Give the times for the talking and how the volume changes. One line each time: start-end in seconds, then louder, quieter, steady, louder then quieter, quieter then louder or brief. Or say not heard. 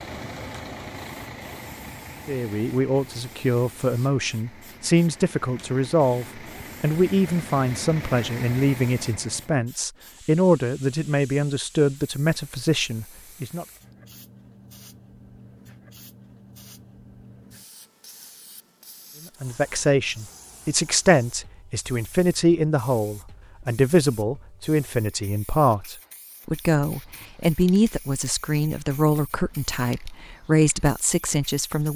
2.2-13.7 steady
19.4-31.9 steady.